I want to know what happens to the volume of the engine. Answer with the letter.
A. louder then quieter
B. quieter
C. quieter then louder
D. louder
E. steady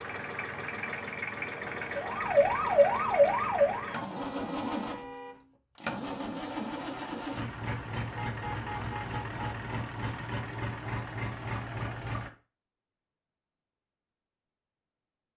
E.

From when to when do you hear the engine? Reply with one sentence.
You can hear the engine from 0.0 to 12.3 s.